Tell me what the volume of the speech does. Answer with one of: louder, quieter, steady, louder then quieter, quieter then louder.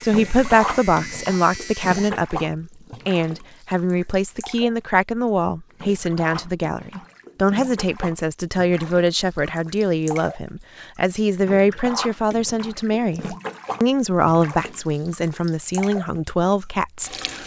steady.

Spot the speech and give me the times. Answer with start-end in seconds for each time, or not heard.
0.0-17.4.